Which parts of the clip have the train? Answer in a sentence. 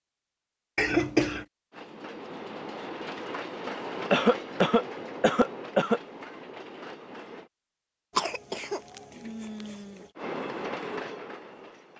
You can hear the train from 1.7 to 7.5 s and from 10.2 to 11.9 s.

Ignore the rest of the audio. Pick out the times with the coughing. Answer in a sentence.
You can hear the coughing from 0.8 to 1.4 s, from 4.1 to 6.0 s and from 8.2 to 10.1 s.